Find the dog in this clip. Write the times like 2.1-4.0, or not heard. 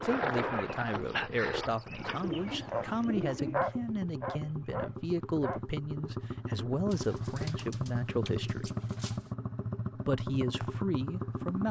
0.0-5.6.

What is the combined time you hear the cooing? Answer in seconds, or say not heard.
4 s.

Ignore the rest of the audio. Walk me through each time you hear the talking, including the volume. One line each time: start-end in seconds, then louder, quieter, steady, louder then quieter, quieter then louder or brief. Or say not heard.
0.0-8.7 steady
10.1-11.6 brief.